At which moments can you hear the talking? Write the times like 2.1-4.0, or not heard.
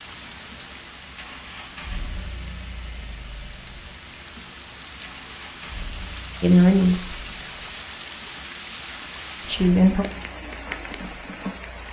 6.4-7.2, 9.4-10.1.